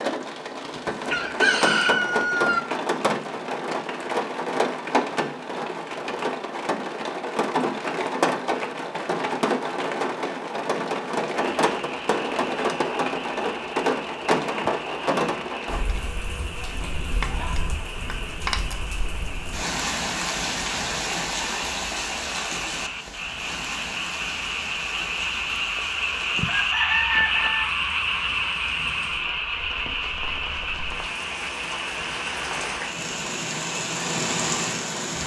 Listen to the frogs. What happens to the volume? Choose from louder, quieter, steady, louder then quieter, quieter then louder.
louder then quieter.